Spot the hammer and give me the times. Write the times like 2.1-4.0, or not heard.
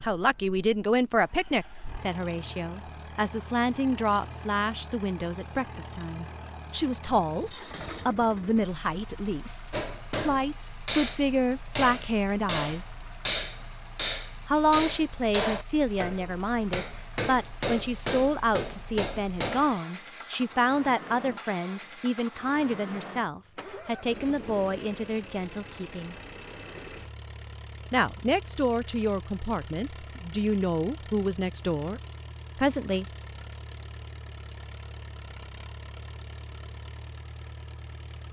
9.7-19.8.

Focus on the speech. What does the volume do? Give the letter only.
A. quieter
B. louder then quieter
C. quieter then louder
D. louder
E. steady
E.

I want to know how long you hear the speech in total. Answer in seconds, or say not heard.
30 s.